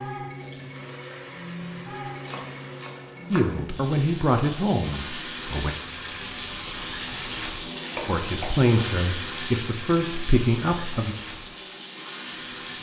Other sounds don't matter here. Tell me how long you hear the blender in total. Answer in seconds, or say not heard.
3 s.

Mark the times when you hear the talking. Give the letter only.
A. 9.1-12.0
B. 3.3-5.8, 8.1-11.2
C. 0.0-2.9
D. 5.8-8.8
B.